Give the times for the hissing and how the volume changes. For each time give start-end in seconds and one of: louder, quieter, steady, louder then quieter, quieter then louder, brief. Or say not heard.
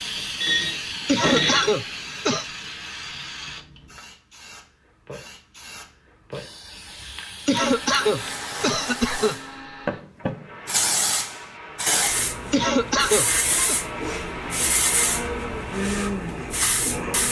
0.0-17.2 quieter then louder.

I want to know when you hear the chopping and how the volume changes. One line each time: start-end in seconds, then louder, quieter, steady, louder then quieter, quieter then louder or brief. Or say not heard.
not heard.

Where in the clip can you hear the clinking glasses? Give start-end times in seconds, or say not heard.
0.4-1.8.